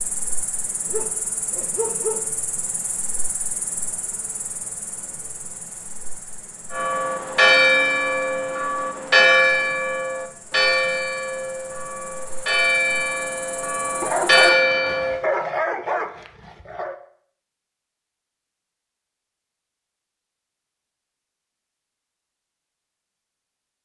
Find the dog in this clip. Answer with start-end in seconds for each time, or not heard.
0.8-2.2, 14.0-16.9.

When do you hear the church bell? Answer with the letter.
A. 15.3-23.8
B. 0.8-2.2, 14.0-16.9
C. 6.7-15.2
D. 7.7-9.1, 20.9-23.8
C.